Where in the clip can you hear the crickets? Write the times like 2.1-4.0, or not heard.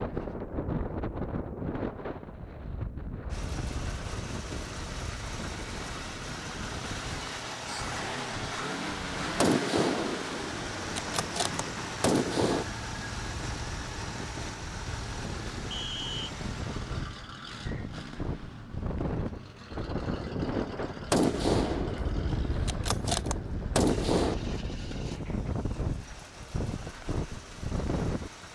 not heard.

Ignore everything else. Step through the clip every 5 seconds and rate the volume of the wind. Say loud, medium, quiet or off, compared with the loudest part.
loud, medium, medium, loud, loud, loud.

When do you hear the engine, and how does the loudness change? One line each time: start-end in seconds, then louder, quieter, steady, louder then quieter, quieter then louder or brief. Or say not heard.
3.3-28.5 quieter.